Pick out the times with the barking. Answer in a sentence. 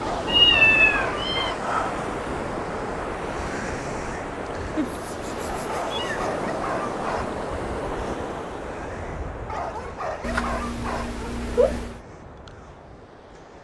The barking can be heard from 0.0 to 1.7 s, from 5.7 to 7.2 s and from 9.4 to 11.2 s.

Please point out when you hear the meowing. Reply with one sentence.
The meowing can be heard from 0.2 to 1.6 s, from 4.8 to 6.3 s and from 10.2 to 11.9 s.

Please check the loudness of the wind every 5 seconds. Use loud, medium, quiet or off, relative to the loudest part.
loud, loud, quiet.